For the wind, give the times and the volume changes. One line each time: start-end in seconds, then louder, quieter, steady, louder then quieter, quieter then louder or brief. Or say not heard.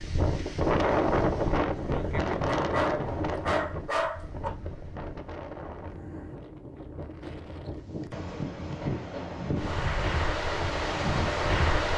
0.0-11.9 quieter then louder.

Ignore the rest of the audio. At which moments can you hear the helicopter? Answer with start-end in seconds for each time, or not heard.
not heard.